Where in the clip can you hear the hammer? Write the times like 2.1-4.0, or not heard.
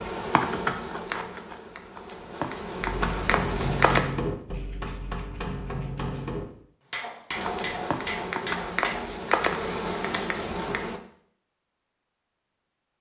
2.8-9.1.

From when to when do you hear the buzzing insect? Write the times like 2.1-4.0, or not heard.
0.0-4.0, 7.3-11.0.